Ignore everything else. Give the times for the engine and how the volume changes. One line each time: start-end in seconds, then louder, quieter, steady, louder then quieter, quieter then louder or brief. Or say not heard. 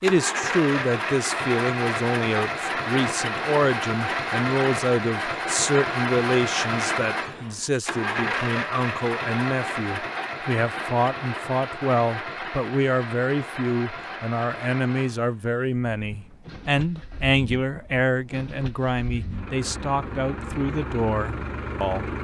0.0-22.2 quieter.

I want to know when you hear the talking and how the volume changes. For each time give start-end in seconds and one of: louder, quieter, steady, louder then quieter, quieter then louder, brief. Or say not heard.
0.0-22.1 steady.